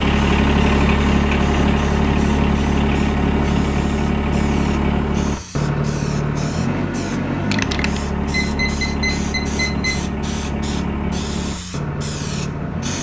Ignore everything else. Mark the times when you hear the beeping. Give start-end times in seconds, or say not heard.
8.3-10.1.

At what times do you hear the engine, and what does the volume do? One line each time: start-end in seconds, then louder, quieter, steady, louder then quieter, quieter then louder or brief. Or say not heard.
0.0-12.9 quieter.